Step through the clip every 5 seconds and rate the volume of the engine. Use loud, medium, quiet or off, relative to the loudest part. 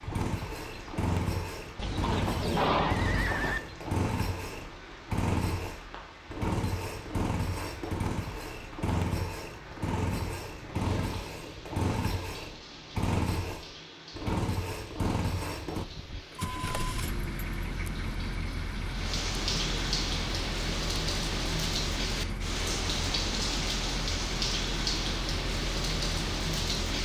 loud, loud, loud, loud, medium, medium.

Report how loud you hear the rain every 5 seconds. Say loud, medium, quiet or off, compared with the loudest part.
quiet, quiet, quiet, medium, loud, loud.